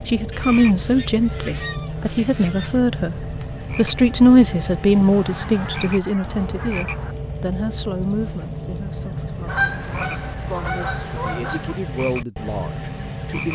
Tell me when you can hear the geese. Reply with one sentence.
You can hear the geese from 0.3 to 2.8 s, from 5.1 to 7.2 s and from 9.4 to 11.8 s.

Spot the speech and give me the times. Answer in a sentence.
The speech can be heard from 0.1 to 13.4 s.